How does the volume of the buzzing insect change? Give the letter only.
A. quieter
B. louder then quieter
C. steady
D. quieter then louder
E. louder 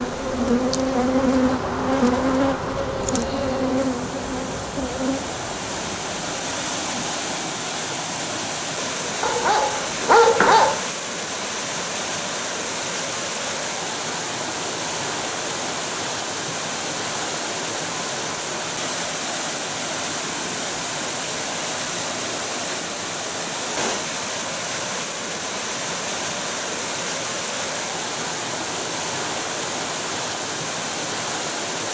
A.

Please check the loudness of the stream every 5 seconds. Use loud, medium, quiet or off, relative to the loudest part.
medium, loud, loud, loud, loud, loud, loud.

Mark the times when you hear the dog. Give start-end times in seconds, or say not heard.
9.2-10.8.